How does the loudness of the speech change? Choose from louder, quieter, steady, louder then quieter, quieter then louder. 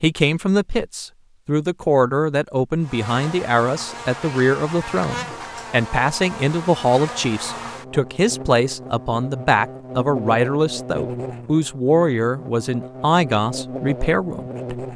steady.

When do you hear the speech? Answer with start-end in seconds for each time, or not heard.
0.0-14.8.